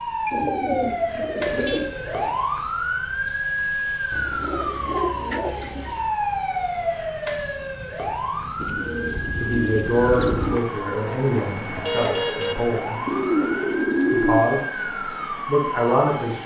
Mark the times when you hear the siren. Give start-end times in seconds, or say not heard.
0.0-16.4.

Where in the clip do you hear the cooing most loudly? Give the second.
14 s.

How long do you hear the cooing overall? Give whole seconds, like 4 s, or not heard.
7 s.